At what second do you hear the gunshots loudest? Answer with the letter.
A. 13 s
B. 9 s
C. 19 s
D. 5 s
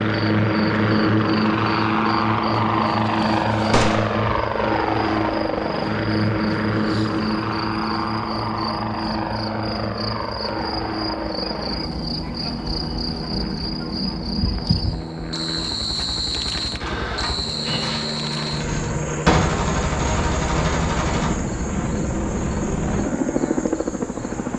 C.